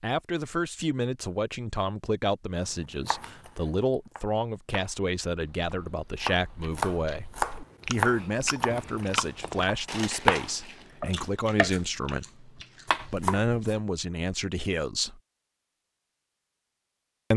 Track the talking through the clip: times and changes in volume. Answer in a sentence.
You can hear the talking from 0.0 to 15.2 s, at a steady volume.